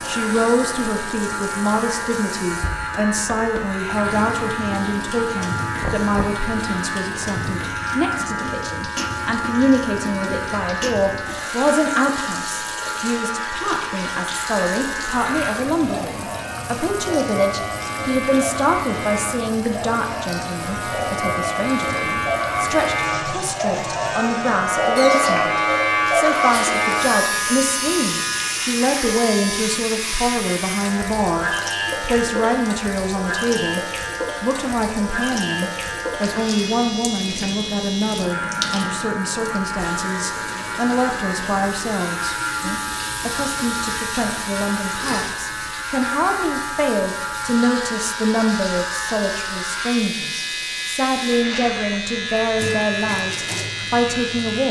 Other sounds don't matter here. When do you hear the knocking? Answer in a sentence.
The knocking can be heard from 5.8 to 6.4 s.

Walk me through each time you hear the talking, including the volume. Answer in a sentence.
The talking can be heard from 0.1 to 54.6 s, at a steady volume.